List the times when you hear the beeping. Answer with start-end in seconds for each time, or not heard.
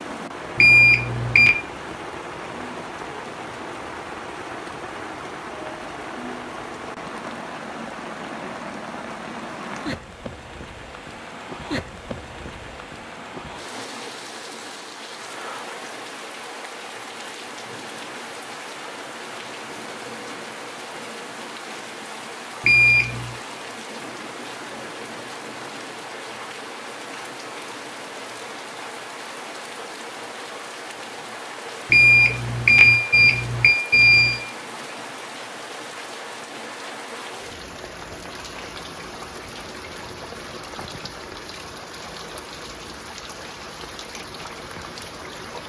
0.6-1.6, 22.6-23.2, 31.9-34.5.